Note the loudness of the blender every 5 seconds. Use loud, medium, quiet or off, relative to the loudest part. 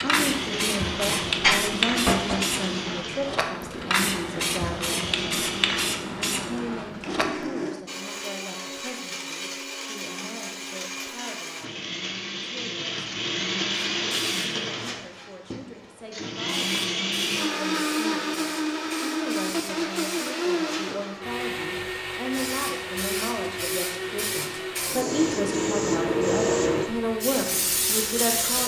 medium, medium, loud, loud, loud, medium.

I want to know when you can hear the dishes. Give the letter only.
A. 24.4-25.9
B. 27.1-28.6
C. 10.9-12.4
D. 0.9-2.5
D.